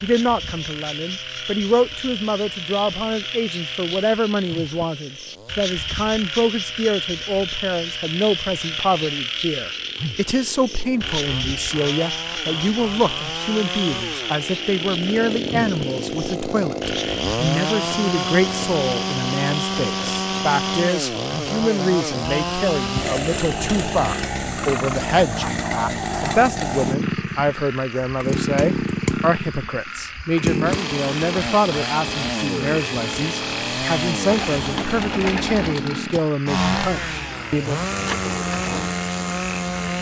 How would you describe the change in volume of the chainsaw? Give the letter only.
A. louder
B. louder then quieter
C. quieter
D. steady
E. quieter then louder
A.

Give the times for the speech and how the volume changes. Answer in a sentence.
The speech can be heard from 0.0 to 37.8 s, at a steady volume.